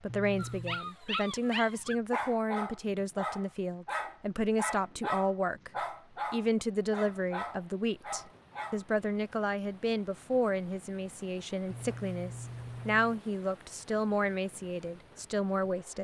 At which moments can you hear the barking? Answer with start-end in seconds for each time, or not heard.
0.3-8.8.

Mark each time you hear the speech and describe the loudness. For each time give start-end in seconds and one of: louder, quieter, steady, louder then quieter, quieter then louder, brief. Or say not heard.
0.0-15.9 steady.